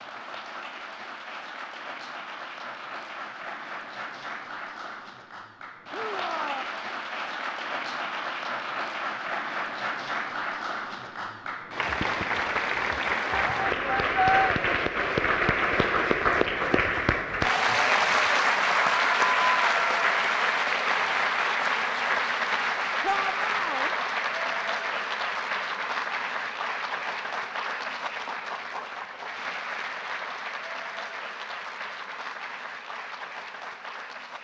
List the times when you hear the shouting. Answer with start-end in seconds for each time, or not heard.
5.9-6.7, 13.3-14.5, 23.0-23.9.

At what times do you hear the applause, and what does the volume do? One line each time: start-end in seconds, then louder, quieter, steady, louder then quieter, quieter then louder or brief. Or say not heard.
0.0-34.3 louder then quieter.